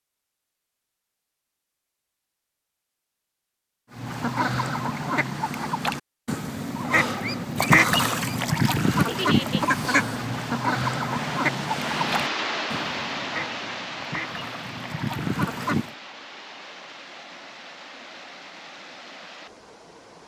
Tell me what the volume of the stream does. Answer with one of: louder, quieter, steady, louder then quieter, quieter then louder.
quieter.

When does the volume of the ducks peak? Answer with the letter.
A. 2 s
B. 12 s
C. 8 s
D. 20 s
C.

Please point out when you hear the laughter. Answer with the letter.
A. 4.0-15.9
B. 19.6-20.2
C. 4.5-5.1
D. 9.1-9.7
D.